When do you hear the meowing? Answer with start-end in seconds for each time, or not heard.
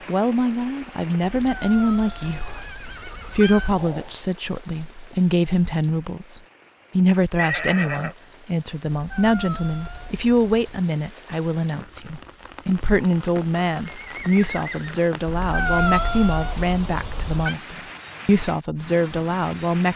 1.4-3.9, 8.9-10.6, 15.2-17.6.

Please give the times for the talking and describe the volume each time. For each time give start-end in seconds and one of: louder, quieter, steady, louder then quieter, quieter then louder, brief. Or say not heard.
0.1-19.9 steady.